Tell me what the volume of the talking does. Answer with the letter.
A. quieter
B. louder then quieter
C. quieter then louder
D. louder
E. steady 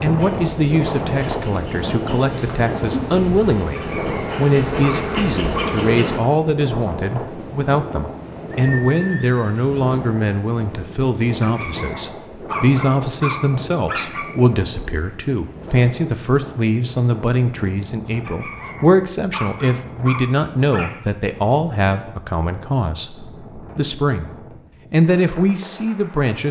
E.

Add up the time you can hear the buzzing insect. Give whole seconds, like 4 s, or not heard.
6 s.